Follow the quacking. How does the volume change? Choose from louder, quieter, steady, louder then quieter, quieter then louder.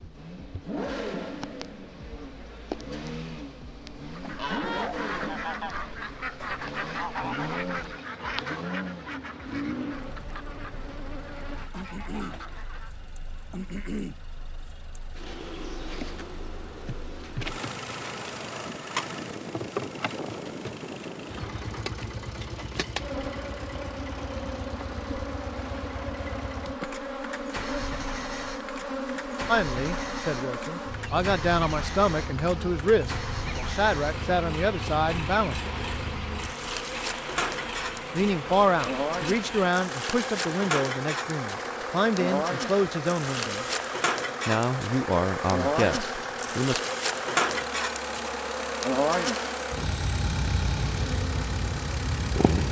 quieter.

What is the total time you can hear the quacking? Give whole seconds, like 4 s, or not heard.
9 s.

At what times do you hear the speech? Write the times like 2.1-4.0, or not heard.
29.4-35.8, 38.1-43.6, 44.5-46.8.